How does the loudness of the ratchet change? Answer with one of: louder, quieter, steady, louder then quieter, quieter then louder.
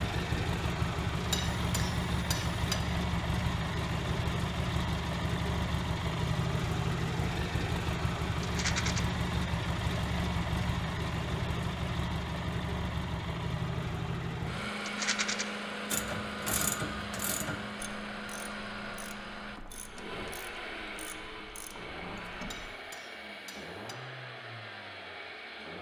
quieter.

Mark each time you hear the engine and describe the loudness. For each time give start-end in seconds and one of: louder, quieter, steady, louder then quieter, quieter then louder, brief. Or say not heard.
0.0-25.7 quieter.